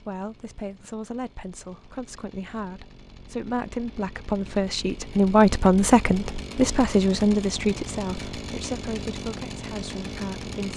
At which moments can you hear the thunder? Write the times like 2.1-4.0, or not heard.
not heard.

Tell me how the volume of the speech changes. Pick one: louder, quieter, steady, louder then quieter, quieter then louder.
louder then quieter.